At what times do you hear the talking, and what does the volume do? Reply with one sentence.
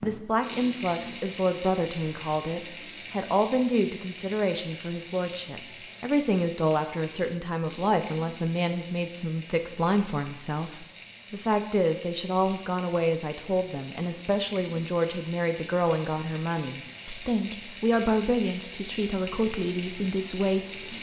You can hear the talking from 0.0 to 20.9 s, at a steady volume.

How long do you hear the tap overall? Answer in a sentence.
The tap can be heard for 21 seconds in total.